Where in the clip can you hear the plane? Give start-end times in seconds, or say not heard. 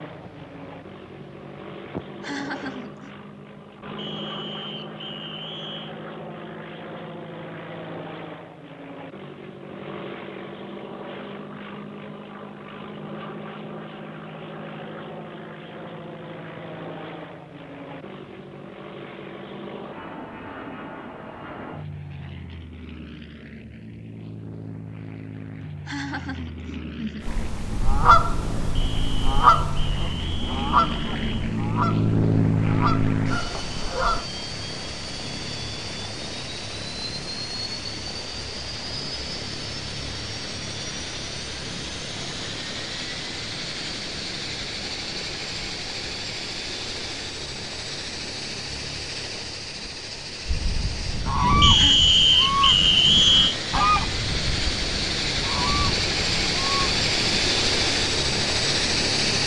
0.0-59.4.